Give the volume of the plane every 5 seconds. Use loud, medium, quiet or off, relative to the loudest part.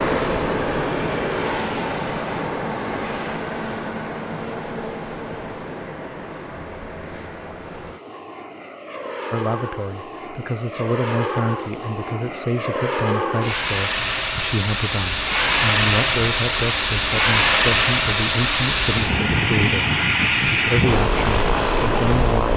medium, quiet, medium, loud, loud.